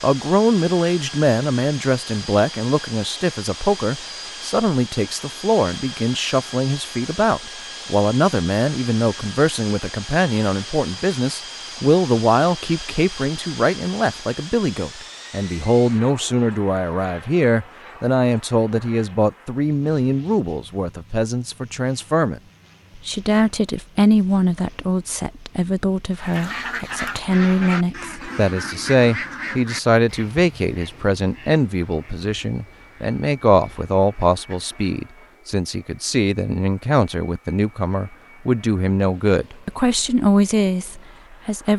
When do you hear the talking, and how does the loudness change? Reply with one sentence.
You can hear the talking from 0.0 to 41.7 s, at a steady volume.